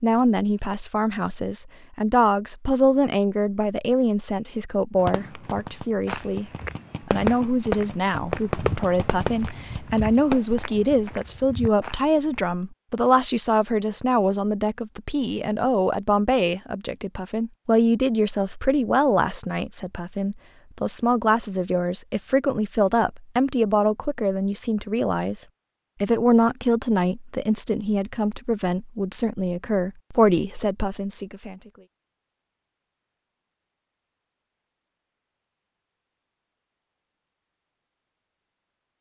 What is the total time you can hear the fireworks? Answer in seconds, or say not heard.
6 s.